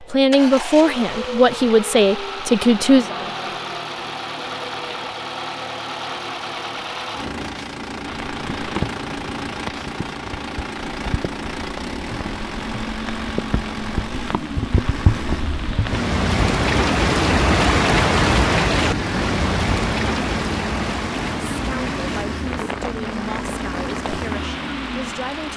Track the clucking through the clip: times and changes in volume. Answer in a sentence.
You can't hear the clucking here.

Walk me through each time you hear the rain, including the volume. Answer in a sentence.
You can hear the rain from 8.1 to 25.5 s, getting louder then quieter.